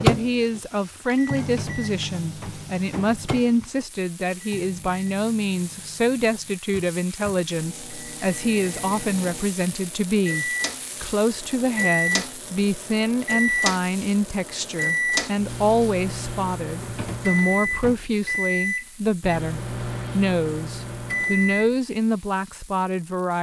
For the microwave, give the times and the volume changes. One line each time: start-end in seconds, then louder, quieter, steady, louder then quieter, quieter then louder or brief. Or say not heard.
0.0-21.7 quieter then louder.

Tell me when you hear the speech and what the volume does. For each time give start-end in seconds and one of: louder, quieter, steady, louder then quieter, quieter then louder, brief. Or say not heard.
0.0-23.3 steady.